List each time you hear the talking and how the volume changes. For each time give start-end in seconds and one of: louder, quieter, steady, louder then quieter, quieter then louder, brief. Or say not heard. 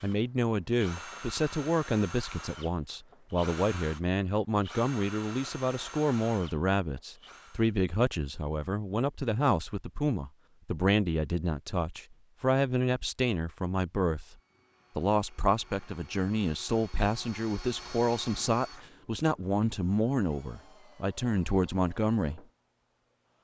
0.0-14.3 steady
14.9-22.4 steady.